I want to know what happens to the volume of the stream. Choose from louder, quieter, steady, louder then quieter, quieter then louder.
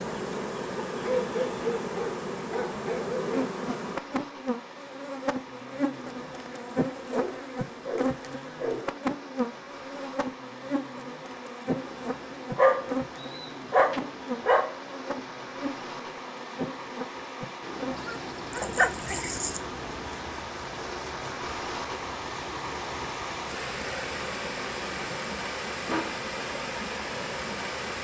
louder.